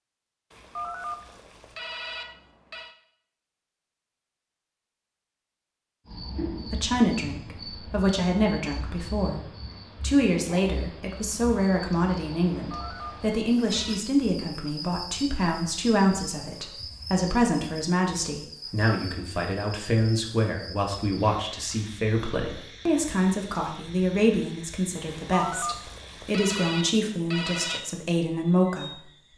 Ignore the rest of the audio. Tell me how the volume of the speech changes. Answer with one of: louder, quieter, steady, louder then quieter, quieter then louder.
steady.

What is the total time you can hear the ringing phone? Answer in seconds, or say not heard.
7 s.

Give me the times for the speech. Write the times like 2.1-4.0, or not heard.
6.5-29.0.